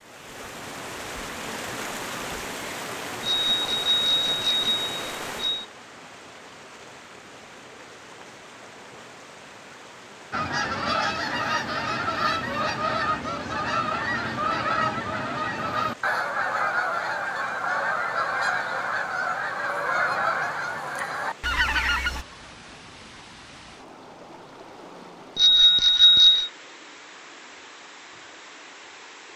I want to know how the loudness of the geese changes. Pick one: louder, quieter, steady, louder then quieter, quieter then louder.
steady.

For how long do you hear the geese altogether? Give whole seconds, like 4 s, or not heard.
12 s.